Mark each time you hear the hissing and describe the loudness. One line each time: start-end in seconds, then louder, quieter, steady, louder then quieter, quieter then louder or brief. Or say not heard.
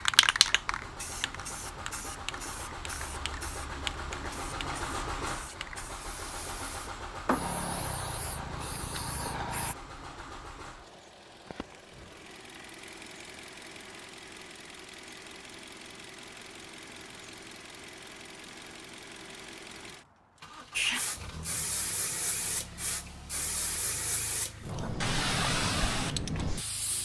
0.0-9.8 quieter then louder
20.8-27.0 louder.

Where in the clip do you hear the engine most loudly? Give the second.
5 s.